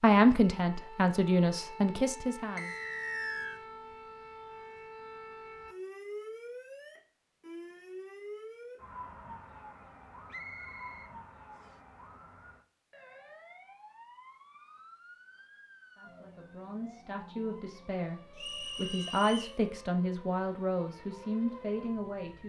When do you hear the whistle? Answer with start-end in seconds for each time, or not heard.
2.5-3.6, 10.3-11.8, 18.4-19.6.